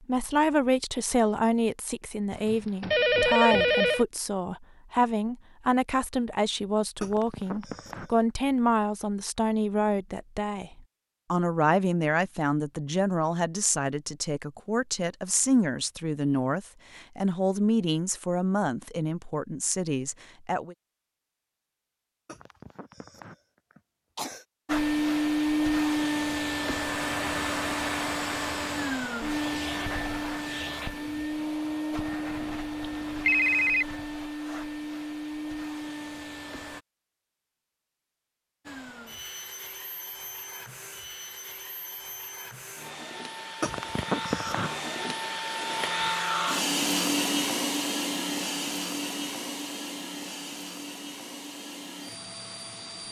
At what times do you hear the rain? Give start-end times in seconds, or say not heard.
not heard.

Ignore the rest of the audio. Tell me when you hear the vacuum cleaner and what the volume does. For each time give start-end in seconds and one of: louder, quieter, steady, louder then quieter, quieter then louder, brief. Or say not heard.
24.6-36.9 quieter
38.6-53.0 louder then quieter.